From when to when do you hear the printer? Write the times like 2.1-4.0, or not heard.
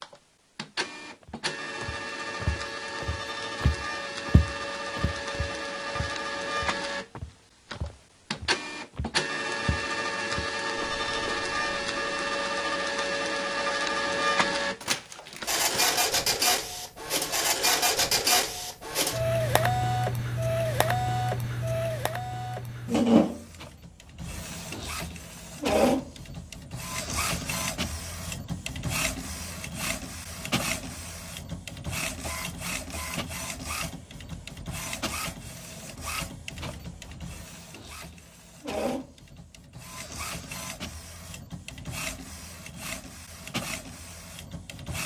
0.0-45.0.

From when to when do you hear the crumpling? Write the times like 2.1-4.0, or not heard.
14.8-16.0.